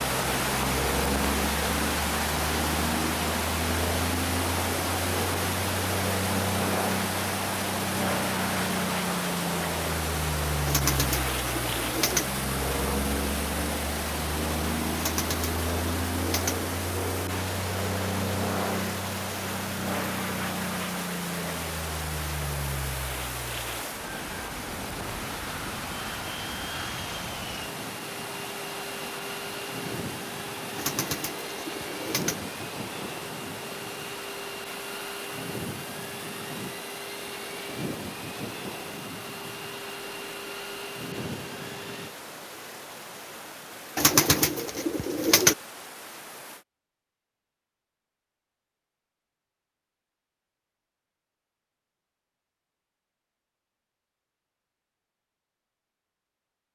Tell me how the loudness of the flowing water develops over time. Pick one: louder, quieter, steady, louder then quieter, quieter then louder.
quieter.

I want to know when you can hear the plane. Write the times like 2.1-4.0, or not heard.
0.0-42.1.